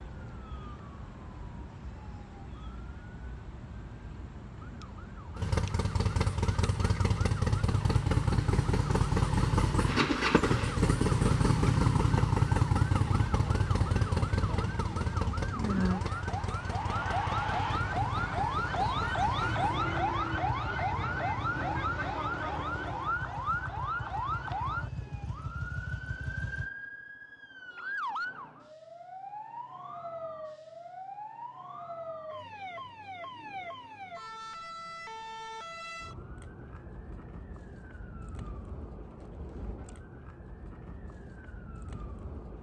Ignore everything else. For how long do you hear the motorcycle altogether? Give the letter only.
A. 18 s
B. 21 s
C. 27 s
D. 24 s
B.